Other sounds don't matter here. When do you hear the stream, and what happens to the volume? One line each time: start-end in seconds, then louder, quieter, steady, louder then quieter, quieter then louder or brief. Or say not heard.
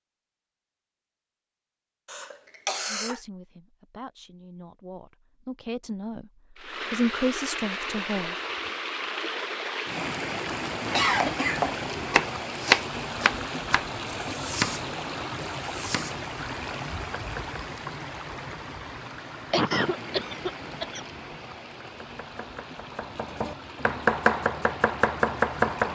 6.5-25.9 quieter.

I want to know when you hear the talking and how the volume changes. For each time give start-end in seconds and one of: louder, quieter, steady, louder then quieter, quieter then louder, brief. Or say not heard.
2.9-8.3 louder.